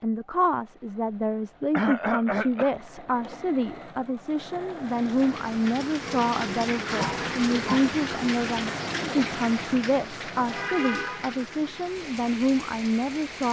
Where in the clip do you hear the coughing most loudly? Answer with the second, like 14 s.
2 s.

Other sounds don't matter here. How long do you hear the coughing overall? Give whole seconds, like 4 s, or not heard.
2 s.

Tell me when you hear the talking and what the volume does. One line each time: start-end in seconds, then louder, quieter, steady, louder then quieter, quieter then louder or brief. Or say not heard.
0.0-13.4 steady.